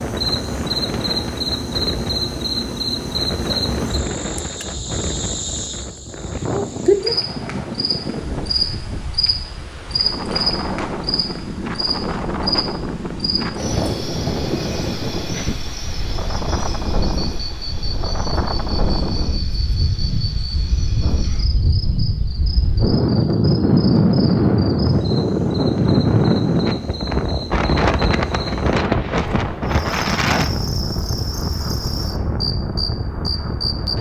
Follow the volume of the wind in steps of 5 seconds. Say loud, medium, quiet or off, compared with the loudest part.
medium, medium, medium, medium, loud, loud, medium.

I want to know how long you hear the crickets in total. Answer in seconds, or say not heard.
34 s.